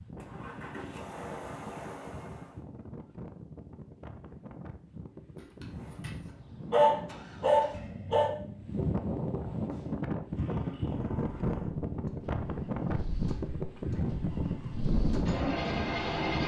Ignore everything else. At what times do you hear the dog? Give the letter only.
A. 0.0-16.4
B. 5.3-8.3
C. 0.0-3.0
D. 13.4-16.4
B.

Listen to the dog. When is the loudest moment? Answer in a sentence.
The volume of the dog peaks at 7 seconds.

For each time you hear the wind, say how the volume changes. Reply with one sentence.
The wind can be heard from 0.0 to 16.4 s, getting louder.